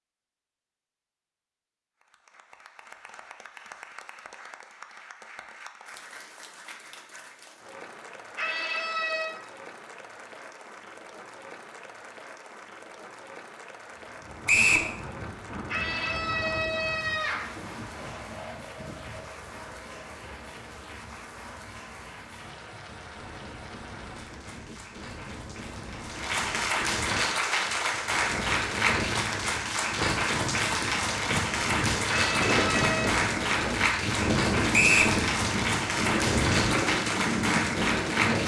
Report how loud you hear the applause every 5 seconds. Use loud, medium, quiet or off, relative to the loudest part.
quiet, quiet, quiet, quiet, quiet, loud, loud, loud.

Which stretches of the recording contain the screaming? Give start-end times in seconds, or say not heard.
8.3-9.3, 15.7-17.5, 32.0-33.2.